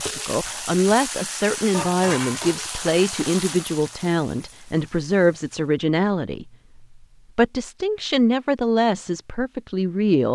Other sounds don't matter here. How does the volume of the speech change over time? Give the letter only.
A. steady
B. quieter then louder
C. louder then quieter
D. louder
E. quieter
A.